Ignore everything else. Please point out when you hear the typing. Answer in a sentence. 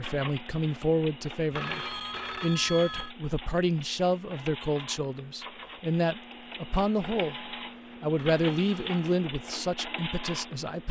You can't hear the typing here.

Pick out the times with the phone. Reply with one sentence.
The phone can be heard from 1.5 to 3.1 s and from 8.2 to 9.1 s.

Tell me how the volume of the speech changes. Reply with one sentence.
The loudness of the speech stays about the same.